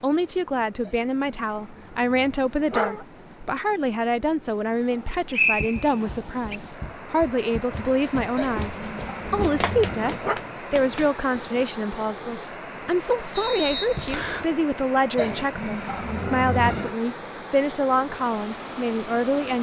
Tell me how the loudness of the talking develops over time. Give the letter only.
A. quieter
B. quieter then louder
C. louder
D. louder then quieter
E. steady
E.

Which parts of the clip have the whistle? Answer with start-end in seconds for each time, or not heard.
4.9-6.5, 13.3-14.4.